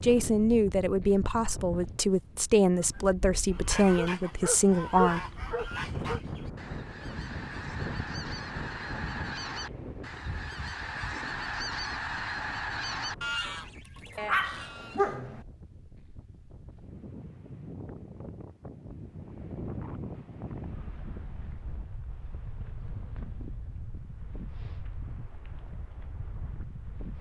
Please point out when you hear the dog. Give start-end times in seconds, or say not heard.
3.9-6.2, 14.2-15.4.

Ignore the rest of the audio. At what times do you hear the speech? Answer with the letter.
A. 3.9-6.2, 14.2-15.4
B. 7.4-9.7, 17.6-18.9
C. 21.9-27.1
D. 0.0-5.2
D.